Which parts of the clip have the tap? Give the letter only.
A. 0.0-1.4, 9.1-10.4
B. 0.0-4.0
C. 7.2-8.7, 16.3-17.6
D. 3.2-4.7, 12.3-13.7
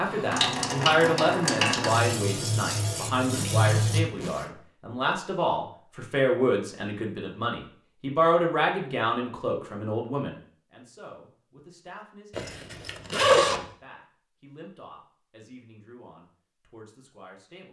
B.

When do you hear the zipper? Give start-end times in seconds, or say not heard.
3.2-4.7, 12.3-13.7.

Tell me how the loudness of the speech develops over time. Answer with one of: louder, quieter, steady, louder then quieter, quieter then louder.
quieter.